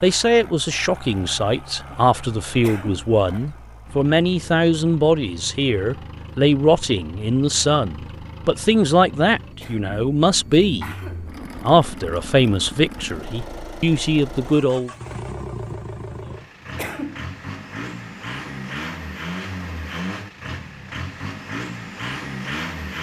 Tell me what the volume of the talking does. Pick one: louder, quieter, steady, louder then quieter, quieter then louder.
steady.